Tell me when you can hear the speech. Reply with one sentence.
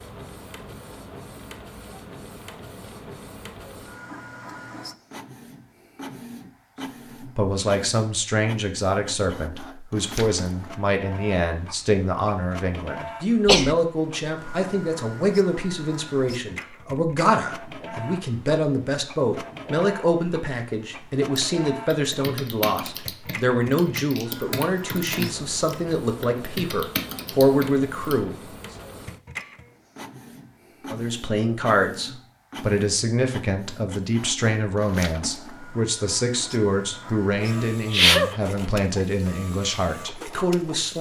You can hear the speech from 7.3 to 28.4 s and from 30.9 to 40.9 s.